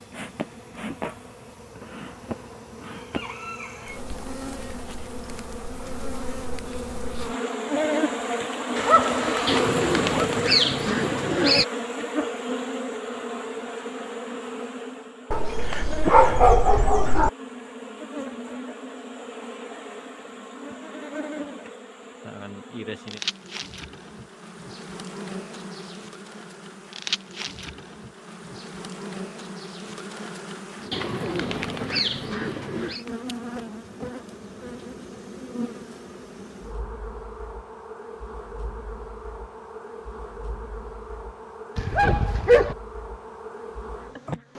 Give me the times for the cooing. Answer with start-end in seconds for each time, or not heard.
9.4-11.7, 30.9-33.0.